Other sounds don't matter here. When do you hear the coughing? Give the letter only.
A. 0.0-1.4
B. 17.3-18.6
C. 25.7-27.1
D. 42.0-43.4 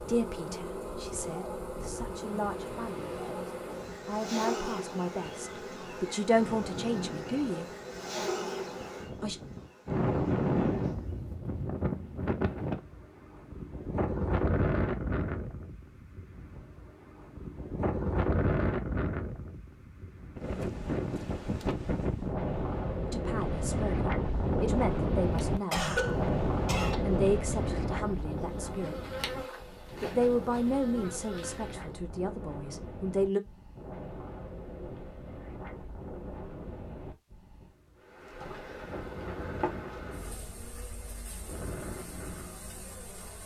C.